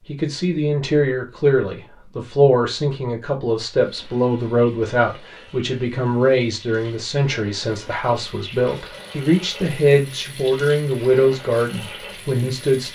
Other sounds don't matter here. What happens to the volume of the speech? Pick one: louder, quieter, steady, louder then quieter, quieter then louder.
steady.